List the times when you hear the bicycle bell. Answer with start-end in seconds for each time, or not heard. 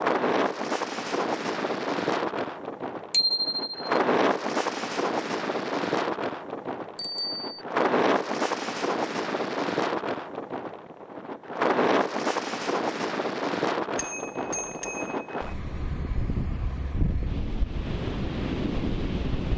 3.1-3.8, 7.0-7.6, 13.9-15.3.